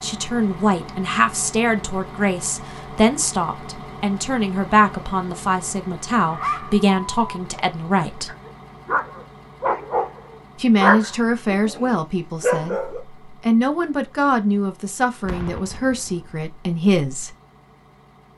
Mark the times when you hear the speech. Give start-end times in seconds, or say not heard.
0.0-8.3, 10.6-17.4.